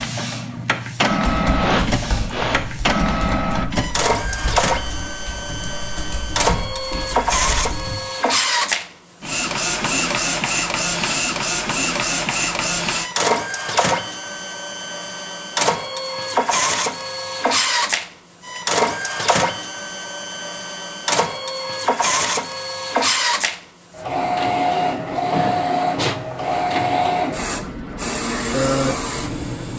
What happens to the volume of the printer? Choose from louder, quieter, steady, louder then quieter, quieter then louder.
steady.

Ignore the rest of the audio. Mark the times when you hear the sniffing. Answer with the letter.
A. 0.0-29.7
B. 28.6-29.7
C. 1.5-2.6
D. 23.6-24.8
C.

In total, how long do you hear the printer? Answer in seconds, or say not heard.
30 s.